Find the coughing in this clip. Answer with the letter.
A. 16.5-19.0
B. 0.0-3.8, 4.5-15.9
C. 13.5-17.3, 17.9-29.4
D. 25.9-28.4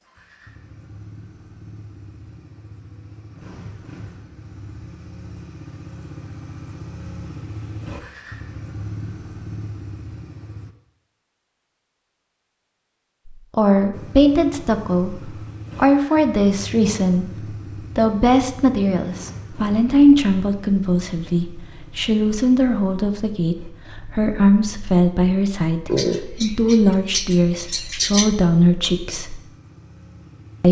D.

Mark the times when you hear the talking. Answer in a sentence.
The talking can be heard from 13.5 to 17.3 s and from 17.9 to 29.4 s.